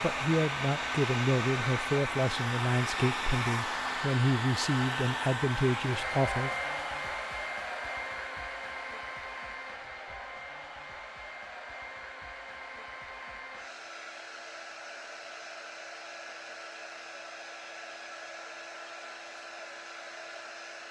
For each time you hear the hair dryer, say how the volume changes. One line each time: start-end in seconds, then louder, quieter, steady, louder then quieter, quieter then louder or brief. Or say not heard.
0.0-20.8 quieter.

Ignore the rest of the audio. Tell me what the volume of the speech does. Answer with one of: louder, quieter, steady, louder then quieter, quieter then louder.
steady.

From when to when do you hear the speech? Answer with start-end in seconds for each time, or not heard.
0.0-6.5.